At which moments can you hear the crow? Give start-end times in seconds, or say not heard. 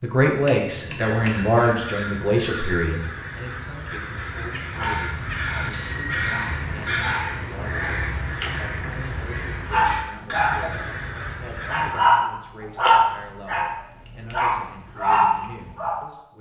0.9-11.9.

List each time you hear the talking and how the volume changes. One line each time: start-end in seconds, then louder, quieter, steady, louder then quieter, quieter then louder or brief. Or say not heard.
0.0-16.3 quieter.